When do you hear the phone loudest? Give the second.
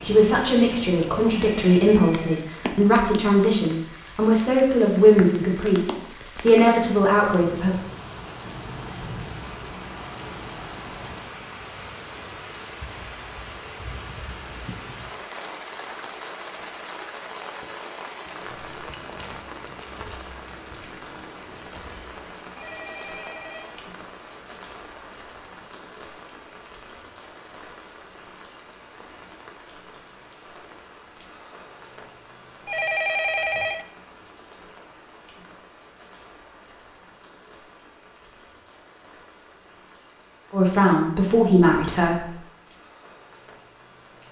33 s.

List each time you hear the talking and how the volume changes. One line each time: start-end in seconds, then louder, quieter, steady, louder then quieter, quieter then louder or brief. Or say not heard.
0.0-7.8 steady
40.5-42.2 brief.